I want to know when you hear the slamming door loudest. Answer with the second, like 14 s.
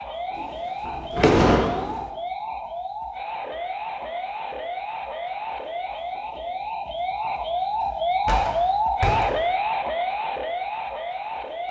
1 s.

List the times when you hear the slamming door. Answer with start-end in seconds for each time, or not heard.
0.3-2.0, 8.2-9.4.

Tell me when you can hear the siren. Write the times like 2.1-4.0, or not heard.
0.0-11.6.